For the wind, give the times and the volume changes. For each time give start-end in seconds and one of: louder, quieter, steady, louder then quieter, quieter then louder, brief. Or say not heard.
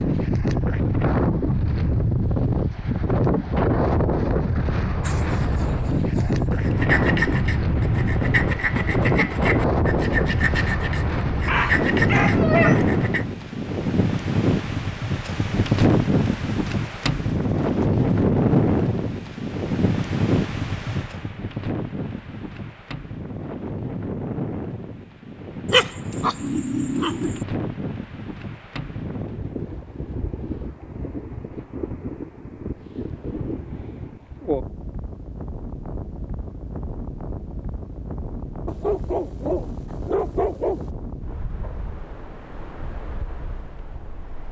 0.0-44.4 quieter.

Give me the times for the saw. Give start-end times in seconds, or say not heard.
6.6-13.2.